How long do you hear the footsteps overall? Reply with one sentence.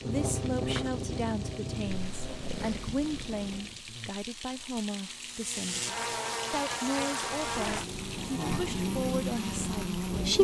You can't hear the footsteps here.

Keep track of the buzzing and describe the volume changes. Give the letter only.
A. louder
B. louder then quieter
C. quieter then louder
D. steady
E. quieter
C.